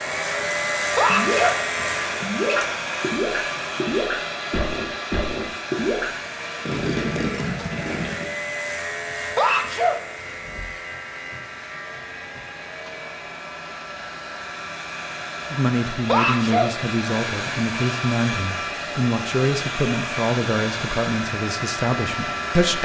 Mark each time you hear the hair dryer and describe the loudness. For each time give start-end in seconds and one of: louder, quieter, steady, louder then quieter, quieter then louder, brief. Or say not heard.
0.0-22.7 quieter then louder.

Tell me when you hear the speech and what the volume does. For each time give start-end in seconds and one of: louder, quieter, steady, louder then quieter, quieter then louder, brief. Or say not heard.
15.5-22.7 steady.